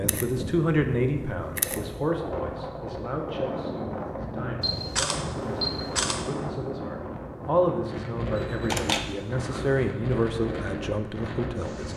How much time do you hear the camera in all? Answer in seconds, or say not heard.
5 s.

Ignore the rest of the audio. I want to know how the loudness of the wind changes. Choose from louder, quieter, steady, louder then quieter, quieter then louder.
steady.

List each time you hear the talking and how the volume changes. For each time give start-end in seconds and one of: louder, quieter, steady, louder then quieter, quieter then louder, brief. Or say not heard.
0.0-11.9 quieter then louder.